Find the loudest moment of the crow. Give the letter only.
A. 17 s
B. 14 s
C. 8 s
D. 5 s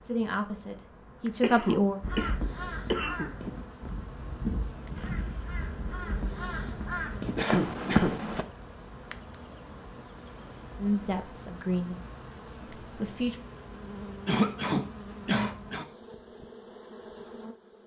C.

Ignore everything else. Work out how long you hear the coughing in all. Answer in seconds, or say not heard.
4 s.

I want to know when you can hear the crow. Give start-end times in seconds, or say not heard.
2.0-8.4.